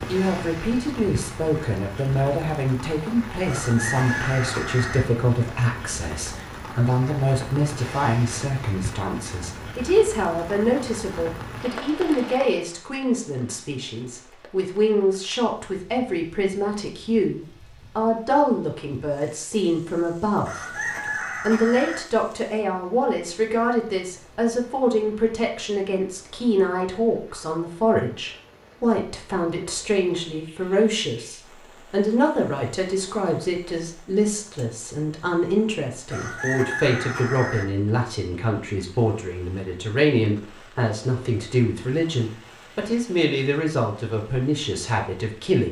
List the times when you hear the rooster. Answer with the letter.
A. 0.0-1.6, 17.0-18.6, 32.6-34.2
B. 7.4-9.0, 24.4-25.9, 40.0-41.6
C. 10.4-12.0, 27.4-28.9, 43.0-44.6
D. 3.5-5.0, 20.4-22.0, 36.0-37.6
D.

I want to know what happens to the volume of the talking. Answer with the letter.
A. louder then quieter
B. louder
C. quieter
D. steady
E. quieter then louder
D.